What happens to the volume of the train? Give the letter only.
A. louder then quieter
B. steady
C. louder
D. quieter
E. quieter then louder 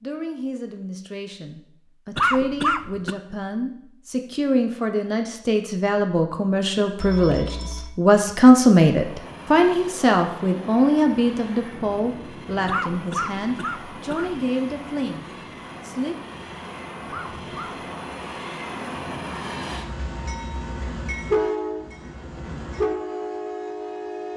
C.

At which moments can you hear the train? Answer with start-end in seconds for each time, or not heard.
8.9-24.3.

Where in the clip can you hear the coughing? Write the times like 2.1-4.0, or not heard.
2.1-3.1, 12.7-14.4, 17.1-17.8.